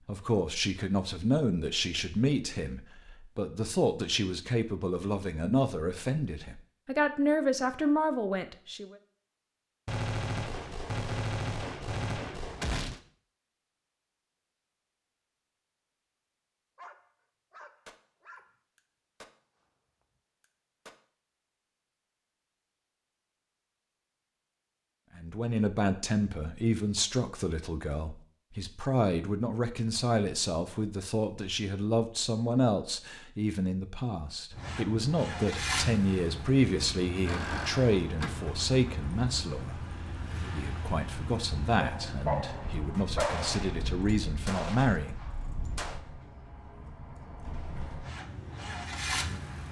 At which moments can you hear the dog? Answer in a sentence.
You can hear the dog from 16.8 to 18.6 s and from 41.8 to 43.5 s.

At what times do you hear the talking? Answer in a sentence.
You can hear the talking from 0.1 to 8.9 s and from 25.1 to 45.2 s.